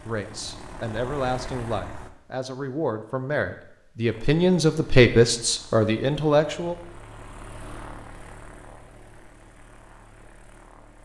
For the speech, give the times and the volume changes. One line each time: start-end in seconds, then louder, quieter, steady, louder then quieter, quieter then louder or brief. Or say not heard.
0.1-6.8 louder.